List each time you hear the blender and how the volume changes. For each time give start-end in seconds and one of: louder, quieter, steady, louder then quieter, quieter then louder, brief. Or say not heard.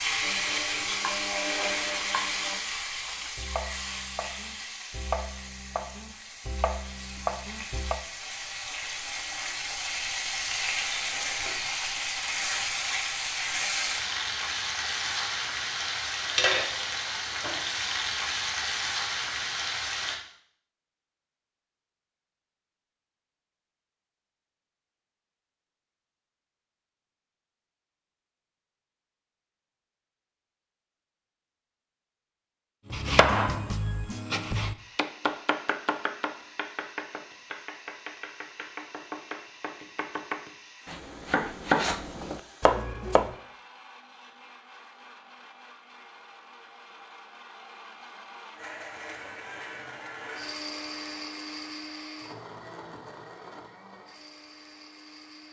0.1-2.6 brief
34.8-55.4 louder.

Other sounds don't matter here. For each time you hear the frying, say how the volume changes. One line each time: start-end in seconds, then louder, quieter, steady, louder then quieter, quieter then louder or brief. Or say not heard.
0.0-20.1 quieter then louder.